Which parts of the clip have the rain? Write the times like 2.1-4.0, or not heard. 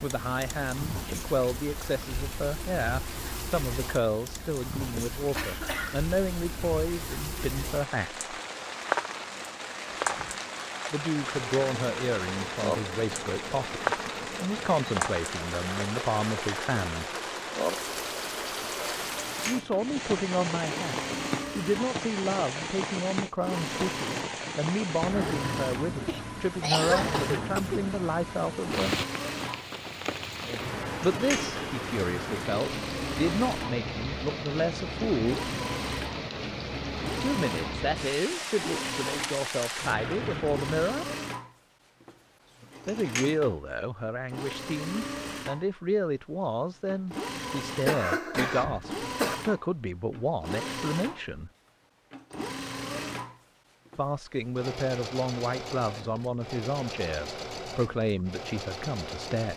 0.0-41.0.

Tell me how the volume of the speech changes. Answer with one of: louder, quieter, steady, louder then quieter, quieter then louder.
steady.